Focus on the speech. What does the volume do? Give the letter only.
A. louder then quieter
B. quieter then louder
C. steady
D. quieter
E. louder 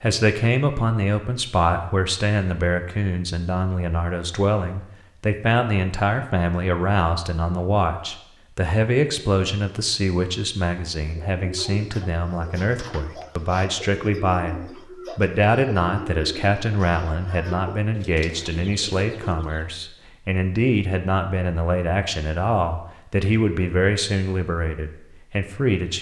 C.